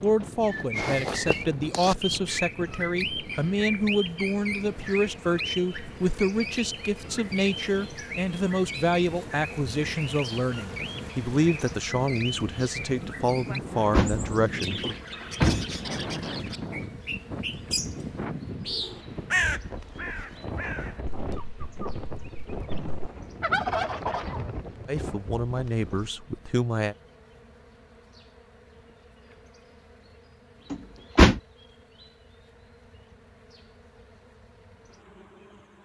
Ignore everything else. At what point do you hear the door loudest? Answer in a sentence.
The volume of the door peaks at 31 seconds.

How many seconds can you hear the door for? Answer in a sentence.
The door can be heard for 3 seconds in total.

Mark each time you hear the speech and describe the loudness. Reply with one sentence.
You can hear the speech from 0.0 to 14.9 s, at a steady volume; and briefly from 24.9 to 26.9 s.